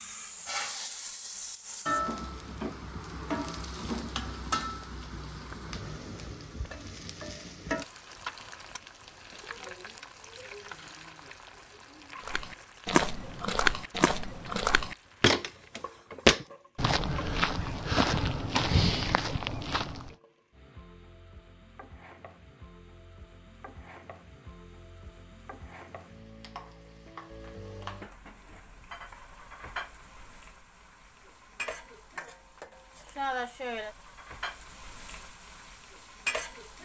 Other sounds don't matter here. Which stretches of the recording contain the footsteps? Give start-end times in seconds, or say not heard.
12.2-20.1.